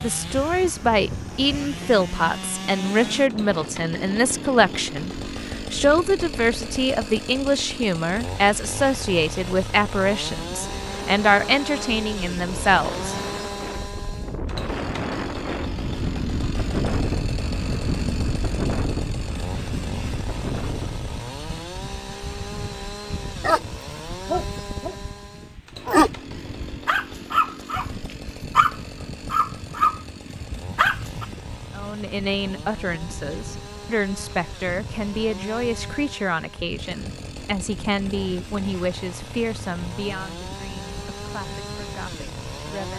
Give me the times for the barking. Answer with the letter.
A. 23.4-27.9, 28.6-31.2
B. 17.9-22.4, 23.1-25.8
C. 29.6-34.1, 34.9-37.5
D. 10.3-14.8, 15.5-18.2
A.